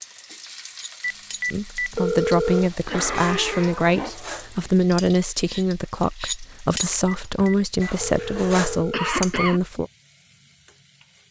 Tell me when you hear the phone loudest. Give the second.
2 s.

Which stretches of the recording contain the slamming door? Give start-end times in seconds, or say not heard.
not heard.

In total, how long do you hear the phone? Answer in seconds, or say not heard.
4 s.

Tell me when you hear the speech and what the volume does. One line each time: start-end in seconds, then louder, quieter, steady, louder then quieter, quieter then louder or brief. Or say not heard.
1.5-9.9 steady.